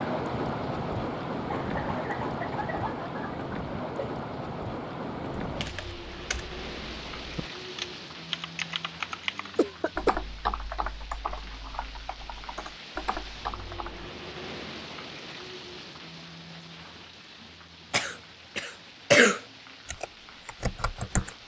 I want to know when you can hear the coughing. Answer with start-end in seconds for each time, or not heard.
1.4-4.1, 9.2-10.1, 17.9-19.4.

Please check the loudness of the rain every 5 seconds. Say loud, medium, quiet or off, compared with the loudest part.
loud, medium, medium, quiet, quiet.